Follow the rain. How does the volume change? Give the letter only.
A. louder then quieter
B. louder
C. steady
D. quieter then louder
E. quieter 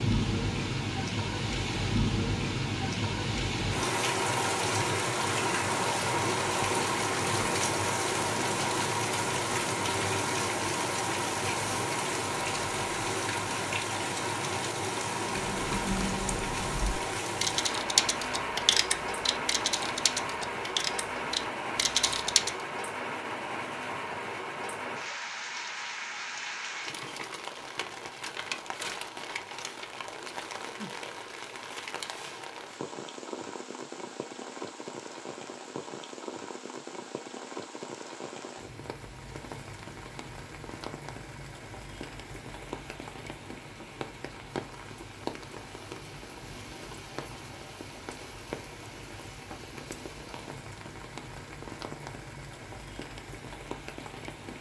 E.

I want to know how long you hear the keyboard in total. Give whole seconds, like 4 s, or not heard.
7 s.